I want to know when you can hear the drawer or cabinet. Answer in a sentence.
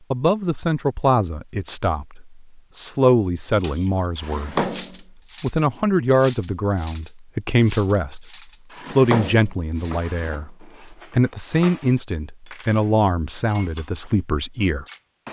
The drawer or cabinet can be heard from 4.2 to 5.0 s and from 8.7 to 10.4 s.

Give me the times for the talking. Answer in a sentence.
The talking can be heard from 0.1 to 4.7 s, from 5.4 to 8.2 s and from 8.8 to 14.8 s.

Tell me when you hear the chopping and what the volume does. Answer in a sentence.
You can't hear the chopping here.